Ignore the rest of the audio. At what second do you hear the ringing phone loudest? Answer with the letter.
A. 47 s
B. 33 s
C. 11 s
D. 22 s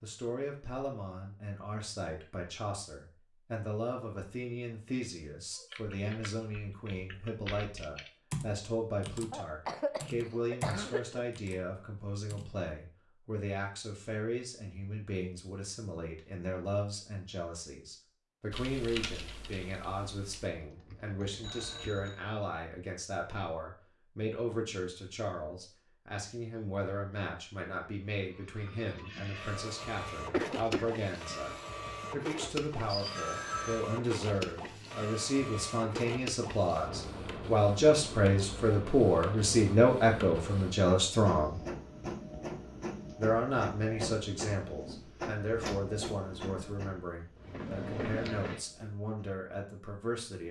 B.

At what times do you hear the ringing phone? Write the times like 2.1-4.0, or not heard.
21.4-22.2, 32.9-33.9.